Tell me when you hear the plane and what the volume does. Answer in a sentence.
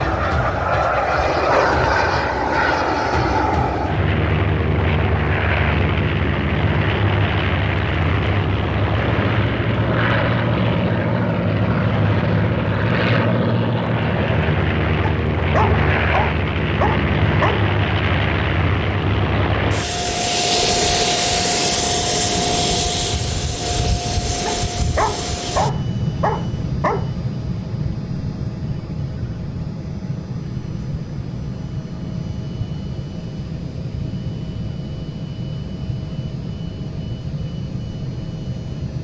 You can hear the plane from 0.0 to 38.9 s, getting quieter.